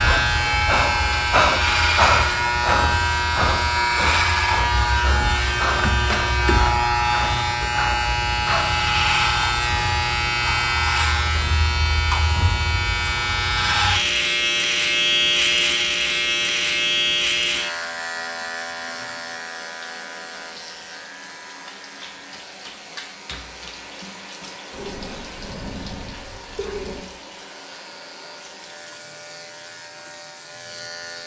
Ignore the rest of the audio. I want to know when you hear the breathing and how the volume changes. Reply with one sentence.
The breathing can be heard from 0.0 to 8.7 s, getting quieter; and briefly from 24.7 to 27.0 s.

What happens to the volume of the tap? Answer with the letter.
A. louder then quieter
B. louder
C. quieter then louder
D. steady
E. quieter
A.